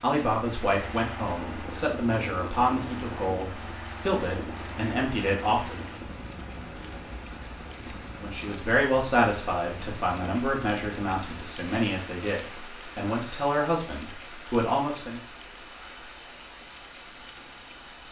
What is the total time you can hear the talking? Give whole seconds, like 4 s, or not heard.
13 s.